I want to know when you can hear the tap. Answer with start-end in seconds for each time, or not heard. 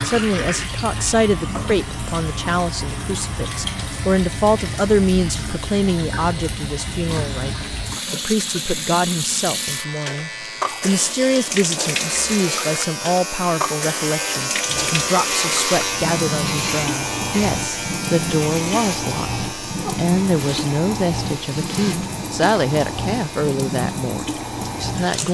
0.0-25.2.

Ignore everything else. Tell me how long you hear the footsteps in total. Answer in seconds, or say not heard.
not heard.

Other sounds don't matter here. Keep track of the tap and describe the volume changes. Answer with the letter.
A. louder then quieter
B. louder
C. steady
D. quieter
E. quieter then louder
C.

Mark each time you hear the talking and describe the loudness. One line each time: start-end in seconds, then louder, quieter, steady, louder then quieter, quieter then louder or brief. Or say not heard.
0.0-25.2 steady.